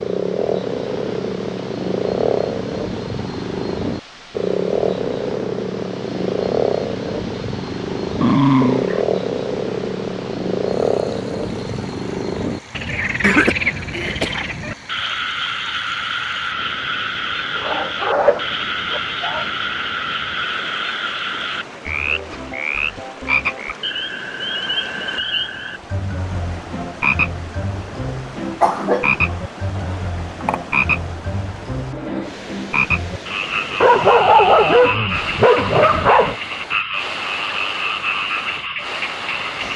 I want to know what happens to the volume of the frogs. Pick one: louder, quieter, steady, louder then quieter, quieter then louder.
steady.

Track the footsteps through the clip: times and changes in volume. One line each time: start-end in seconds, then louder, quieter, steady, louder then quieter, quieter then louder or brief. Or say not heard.
not heard.